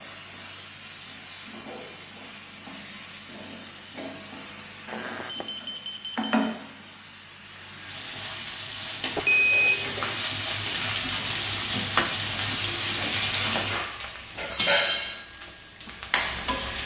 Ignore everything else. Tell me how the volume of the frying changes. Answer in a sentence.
The volume of the frying goes up.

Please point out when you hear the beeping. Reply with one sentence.
The beeping can be heard from 4.8 to 6.3 s and from 9.2 to 10.2 s.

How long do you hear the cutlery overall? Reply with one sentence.
The cutlery can't be heard in this clip.